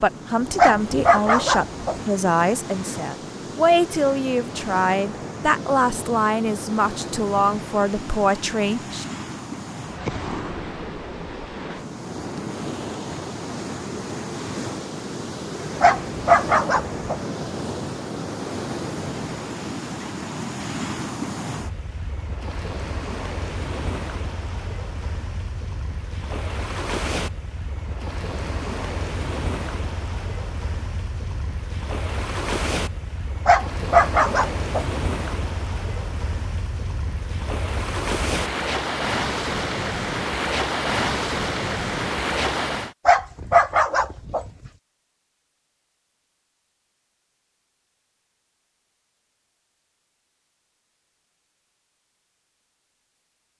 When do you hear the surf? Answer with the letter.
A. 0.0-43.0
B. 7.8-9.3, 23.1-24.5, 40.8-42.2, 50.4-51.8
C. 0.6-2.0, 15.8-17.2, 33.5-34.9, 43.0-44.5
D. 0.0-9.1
A.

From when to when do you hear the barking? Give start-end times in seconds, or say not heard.
0.6-2.0, 15.8-17.2, 33.5-34.9, 43.0-44.5.